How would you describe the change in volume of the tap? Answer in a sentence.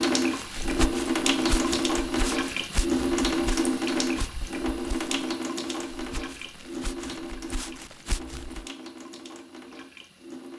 The loudness of the tap goes down.